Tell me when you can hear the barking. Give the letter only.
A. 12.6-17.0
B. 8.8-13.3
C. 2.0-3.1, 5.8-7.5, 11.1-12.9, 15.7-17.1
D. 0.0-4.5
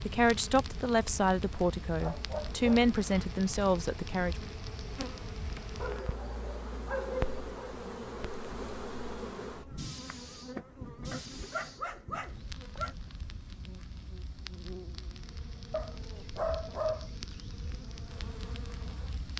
C.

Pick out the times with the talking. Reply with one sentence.
The talking can be heard from 0.0 to 4.5 s.